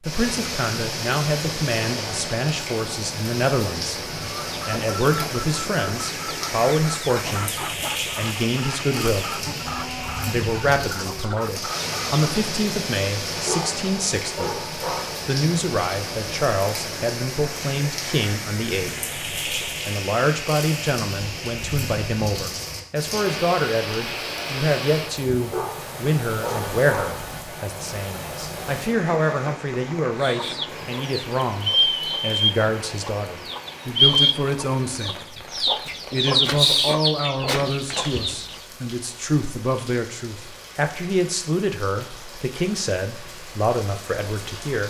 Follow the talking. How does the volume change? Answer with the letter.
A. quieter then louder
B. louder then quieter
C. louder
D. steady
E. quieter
D.